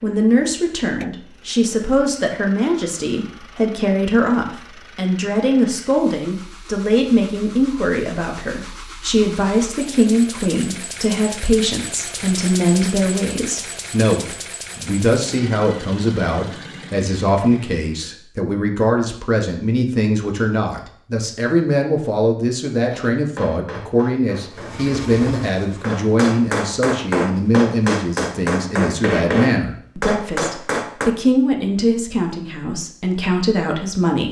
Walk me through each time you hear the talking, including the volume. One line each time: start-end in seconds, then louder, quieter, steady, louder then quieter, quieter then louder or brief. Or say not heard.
0.0-34.2 steady.